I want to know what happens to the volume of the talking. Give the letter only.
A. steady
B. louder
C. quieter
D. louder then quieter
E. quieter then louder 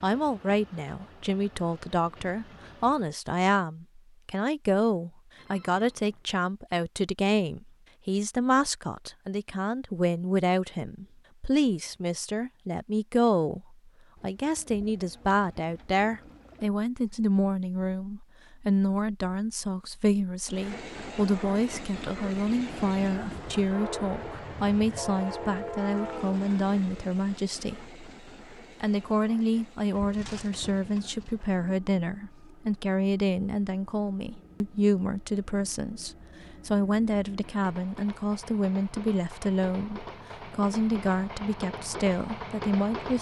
A.